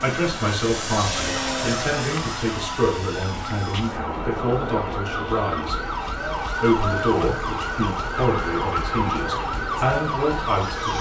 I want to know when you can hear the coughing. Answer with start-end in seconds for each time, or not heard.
not heard.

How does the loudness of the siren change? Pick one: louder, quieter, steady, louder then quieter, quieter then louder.
louder.